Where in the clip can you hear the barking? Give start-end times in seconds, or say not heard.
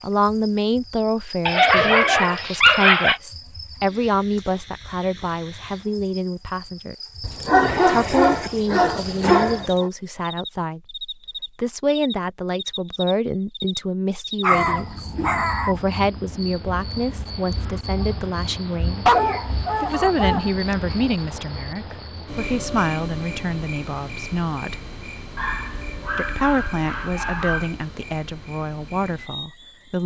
1.4-3.2, 7.2-9.9, 14.4-15.8, 19.1-20.6, 25.4-27.8.